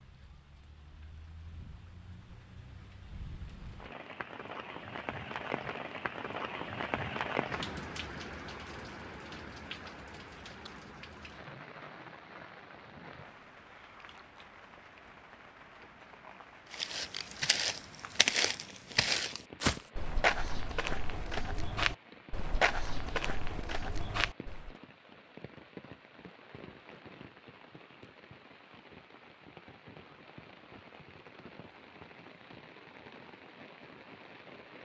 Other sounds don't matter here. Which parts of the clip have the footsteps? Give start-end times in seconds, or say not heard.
16.7-24.8.